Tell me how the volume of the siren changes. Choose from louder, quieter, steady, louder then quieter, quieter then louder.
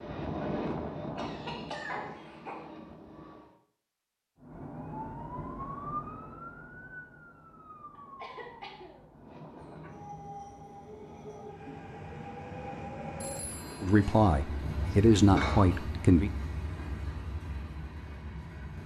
quieter.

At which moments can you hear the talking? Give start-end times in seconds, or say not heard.
13.8-16.3.